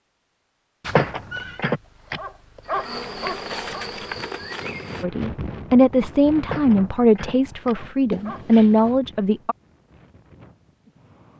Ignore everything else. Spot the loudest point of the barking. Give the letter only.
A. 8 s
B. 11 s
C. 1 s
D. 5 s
C.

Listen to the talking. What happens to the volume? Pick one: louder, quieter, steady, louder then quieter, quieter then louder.
quieter then louder.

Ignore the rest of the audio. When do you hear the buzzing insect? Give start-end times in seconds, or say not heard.
2.6-5.0.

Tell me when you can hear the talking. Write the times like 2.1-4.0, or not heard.
5.0-9.6.